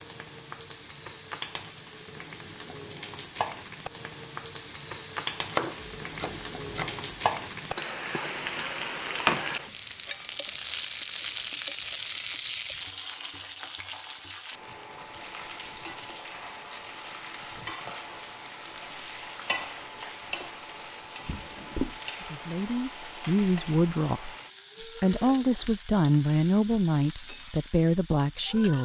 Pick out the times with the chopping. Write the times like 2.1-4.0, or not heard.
5.5-7.0.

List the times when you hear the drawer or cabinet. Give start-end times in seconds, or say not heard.
21.2-21.9.